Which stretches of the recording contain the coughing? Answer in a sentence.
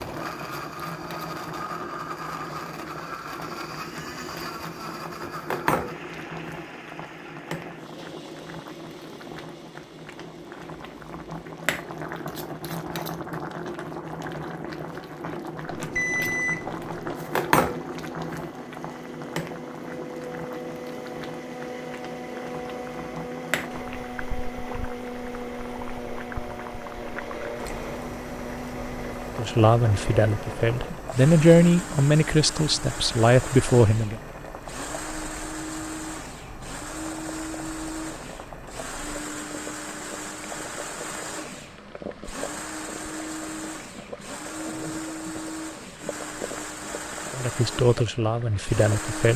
The coughing can be heard from 44.5 to 45.4 s.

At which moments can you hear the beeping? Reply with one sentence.
You can hear the beeping from 15.7 to 17.1 s.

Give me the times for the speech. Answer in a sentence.
You can hear the speech from 29.4 to 34.2 s and from 47.4 to 49.3 s.